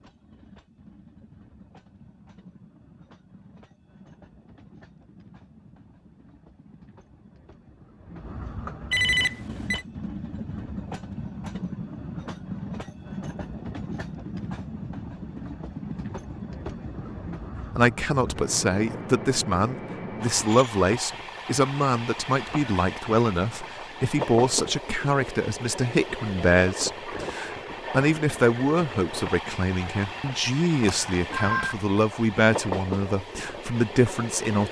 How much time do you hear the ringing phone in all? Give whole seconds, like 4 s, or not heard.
2 s.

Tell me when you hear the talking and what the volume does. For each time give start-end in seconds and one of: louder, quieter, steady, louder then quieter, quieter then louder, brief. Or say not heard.
17.8-34.6 steady.